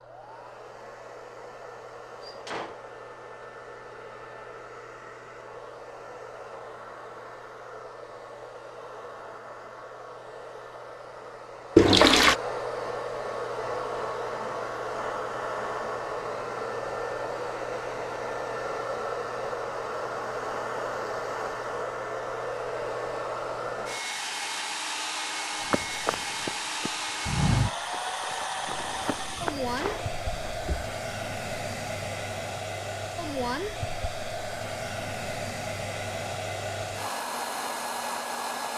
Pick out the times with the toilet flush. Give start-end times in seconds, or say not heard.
11.8-12.3.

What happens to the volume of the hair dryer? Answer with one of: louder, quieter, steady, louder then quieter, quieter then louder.
louder.